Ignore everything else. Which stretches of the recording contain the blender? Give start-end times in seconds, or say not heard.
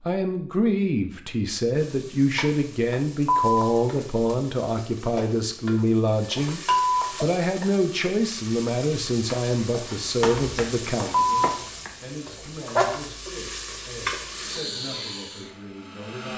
14.3-16.3.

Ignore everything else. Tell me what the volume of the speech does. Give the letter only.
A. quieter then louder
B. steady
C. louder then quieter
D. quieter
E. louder
D.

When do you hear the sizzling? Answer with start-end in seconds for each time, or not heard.
1.7-14.6.